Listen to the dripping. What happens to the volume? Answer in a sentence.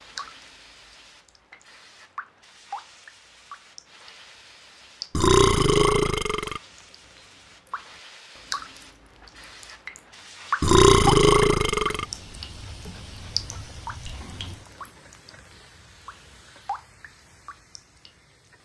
The volume of the dripping goes up, then down.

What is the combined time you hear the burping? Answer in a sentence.
The burping can be heard for 3 seconds in total.